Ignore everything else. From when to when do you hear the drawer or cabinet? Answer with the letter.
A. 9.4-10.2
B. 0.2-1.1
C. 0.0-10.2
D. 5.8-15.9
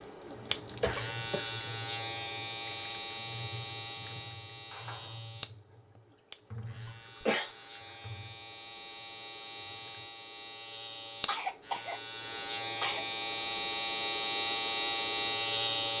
B.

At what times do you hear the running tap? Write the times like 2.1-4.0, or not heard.
0.0-10.2.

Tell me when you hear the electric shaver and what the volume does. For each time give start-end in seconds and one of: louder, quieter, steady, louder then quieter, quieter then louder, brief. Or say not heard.
0.0-15.9 quieter then louder.